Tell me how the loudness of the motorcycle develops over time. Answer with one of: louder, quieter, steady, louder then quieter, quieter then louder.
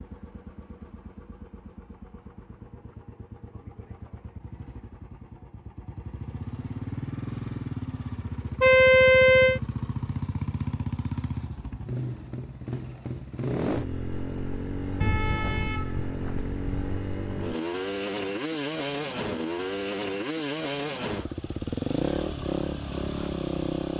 louder.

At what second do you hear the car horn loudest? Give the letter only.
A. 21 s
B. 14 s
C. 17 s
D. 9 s
D.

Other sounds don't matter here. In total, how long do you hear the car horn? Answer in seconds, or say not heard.
3 s.